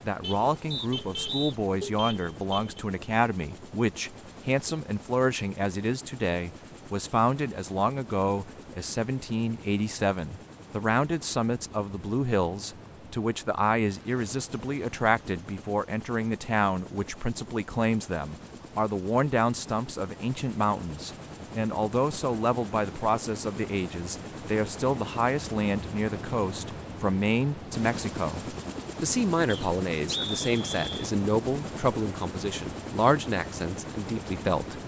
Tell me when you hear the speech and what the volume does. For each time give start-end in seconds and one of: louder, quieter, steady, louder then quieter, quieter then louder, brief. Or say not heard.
0.0-34.8 steady.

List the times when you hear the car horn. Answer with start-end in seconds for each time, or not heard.
0.2-2.8.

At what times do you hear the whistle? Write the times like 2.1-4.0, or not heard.
0.7-1.6, 29.4-31.1.